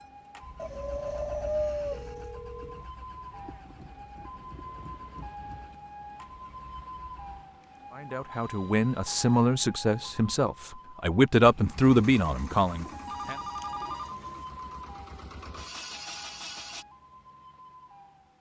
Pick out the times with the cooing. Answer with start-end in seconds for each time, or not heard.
0.6-2.3, 12.2-14.4.